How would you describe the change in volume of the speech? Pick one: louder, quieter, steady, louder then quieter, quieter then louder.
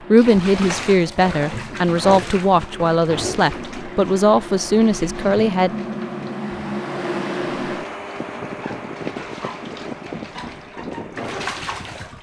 steady.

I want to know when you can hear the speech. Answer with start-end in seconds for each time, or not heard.
0.1-5.7.